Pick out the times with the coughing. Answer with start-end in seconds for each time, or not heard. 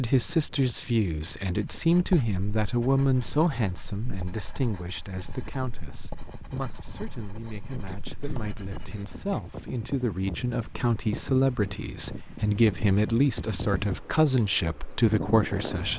7.4-9.4.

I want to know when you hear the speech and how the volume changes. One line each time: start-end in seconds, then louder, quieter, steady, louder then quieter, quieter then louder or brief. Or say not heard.
0.0-15.9 quieter then louder.